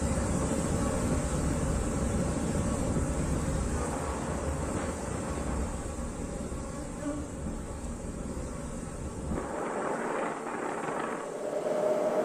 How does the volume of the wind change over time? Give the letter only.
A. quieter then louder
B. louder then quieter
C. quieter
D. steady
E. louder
A.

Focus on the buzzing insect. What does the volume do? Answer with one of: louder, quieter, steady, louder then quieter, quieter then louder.
quieter.